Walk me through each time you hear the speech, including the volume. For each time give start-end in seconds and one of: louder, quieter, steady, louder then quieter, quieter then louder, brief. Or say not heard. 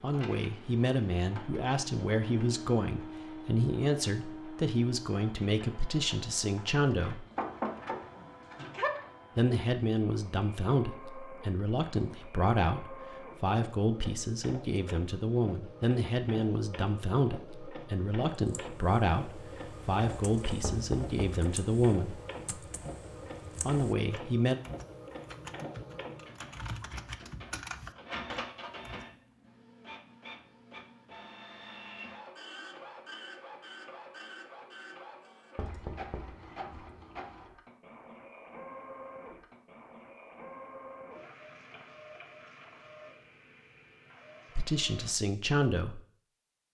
0.0-7.2 steady
9.3-22.2 steady
23.6-24.6 brief
44.5-46.0 brief.